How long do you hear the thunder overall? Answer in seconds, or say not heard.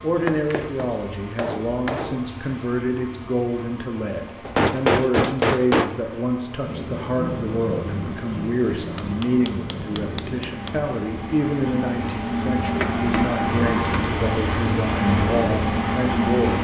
4 s.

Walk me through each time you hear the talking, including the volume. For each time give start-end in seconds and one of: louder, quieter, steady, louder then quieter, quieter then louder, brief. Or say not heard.
0.0-16.6 steady.